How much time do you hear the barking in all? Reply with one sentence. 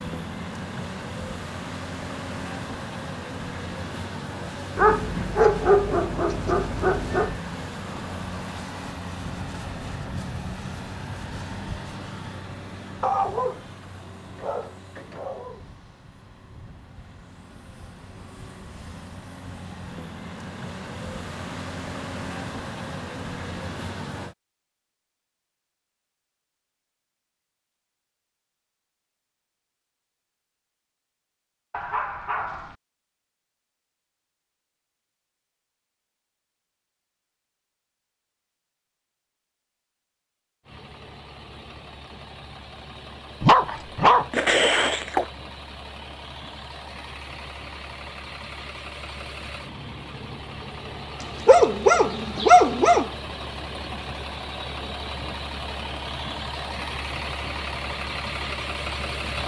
The barking can be heard for 10 seconds in total.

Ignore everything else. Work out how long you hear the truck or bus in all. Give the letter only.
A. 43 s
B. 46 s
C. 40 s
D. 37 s
A.